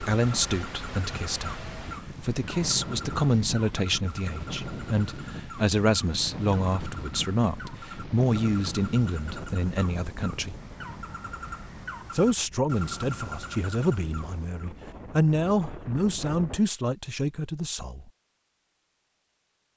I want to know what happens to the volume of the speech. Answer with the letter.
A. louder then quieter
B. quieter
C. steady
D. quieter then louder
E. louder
C.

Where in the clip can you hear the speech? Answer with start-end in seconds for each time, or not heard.
0.0-10.6, 12.1-18.1.